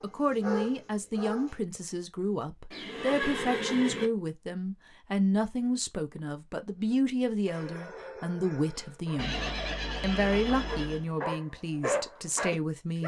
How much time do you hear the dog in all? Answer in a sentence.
You can hear the dog for 8 seconds altogether.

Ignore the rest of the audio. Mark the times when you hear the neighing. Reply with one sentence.
The neighing can be heard from 2.7 to 4.1 s and from 9.2 to 11.1 s.